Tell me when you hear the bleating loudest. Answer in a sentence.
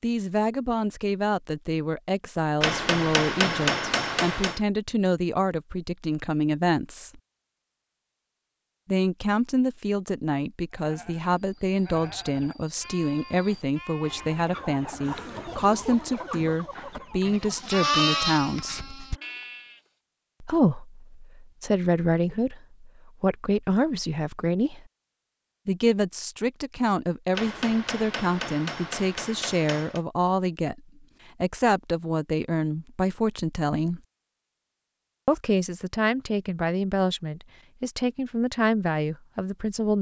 The loudest moment of the bleating is at 18 seconds.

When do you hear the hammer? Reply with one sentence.
The hammer can be heard from 2.6 to 4.6 s and from 27.3 to 30.0 s.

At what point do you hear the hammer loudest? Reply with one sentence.
The volume of the hammer peaks at 4 seconds.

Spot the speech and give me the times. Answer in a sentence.
The speech can be heard from 0.0 to 7.2 s, from 8.8 to 18.9 s, from 20.4 to 24.9 s, from 25.6 to 30.8 s, from 31.4 to 34.0 s and from 35.2 to 39.9 s.